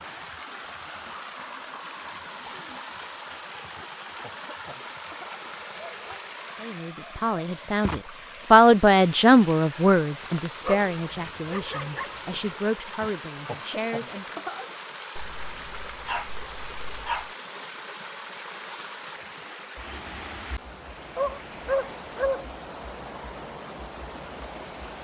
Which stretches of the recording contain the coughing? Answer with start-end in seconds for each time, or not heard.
3.8-5.5, 13.0-14.7.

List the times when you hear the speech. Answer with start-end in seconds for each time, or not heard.
6.6-14.4.